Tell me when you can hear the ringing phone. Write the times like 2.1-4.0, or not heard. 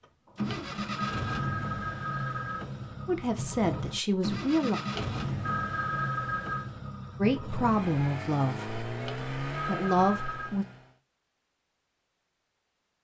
0.5-2.6, 5.0-6.7, 9.1-10.6.